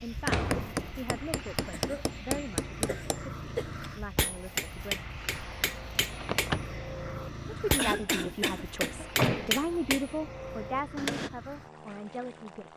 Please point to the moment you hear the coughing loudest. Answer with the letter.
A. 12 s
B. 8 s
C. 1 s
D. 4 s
B.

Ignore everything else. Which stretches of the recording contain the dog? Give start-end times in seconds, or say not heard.
not heard.